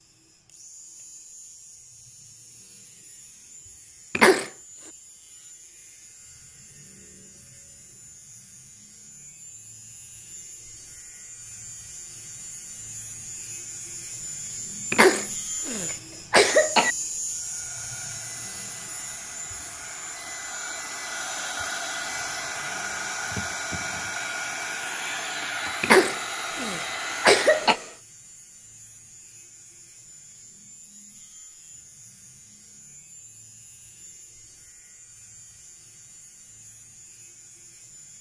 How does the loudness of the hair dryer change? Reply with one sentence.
The loudness of the hair dryer goes up.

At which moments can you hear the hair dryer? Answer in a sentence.
You can hear the hair dryer from 17.2 to 28.0 s.